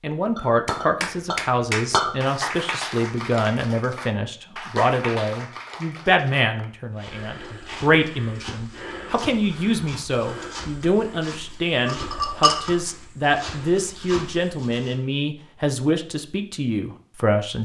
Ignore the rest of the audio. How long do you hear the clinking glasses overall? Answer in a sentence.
The clinking glasses can be heard for 3 seconds in total.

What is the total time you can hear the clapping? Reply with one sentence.
You can hear the clapping for 6 seconds altogether.